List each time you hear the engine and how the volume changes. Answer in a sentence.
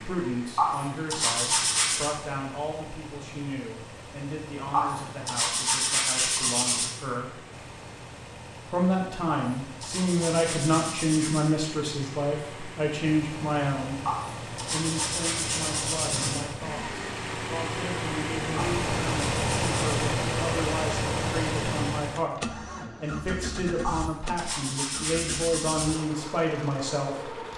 The engine can be heard from 0.0 to 27.5 s, getting louder then quieter.